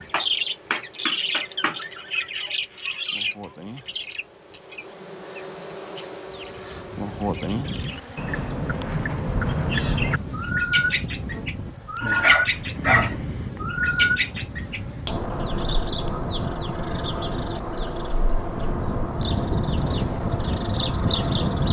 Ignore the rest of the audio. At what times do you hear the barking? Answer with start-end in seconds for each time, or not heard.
12.0-13.5.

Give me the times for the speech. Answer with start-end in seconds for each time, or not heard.
not heard.